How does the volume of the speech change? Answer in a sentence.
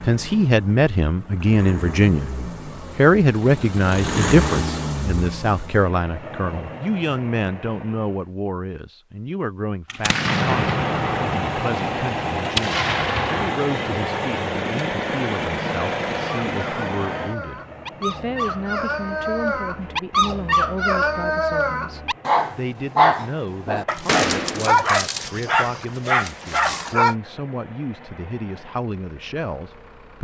The loudness of the speech goes down.